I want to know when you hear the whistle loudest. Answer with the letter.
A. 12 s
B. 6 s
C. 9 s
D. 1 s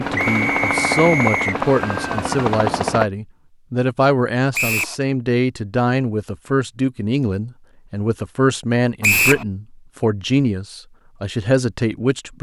C.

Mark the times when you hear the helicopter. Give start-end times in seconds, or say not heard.
0.0-3.1.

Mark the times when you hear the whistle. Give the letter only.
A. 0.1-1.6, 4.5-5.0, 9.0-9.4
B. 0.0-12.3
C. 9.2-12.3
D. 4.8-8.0
A.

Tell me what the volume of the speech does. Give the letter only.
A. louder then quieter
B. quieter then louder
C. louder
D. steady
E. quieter
D.